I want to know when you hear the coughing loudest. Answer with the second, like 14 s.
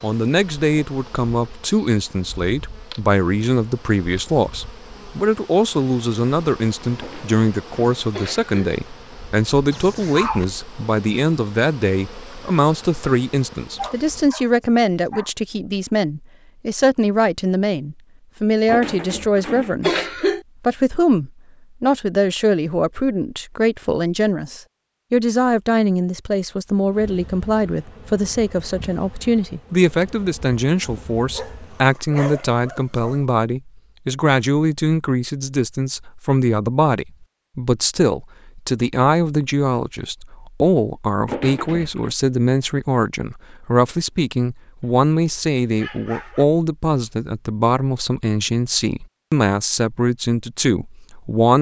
20 s.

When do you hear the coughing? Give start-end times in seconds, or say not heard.
7.0-8.7, 18.6-20.4, 41.2-42.1.